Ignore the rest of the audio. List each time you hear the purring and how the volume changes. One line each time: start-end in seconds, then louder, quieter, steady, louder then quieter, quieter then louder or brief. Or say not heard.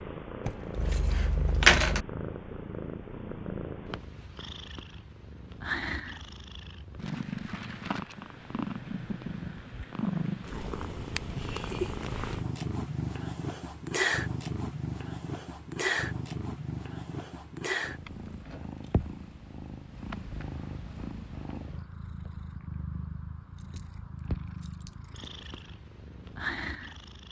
0.0-27.2 louder then quieter.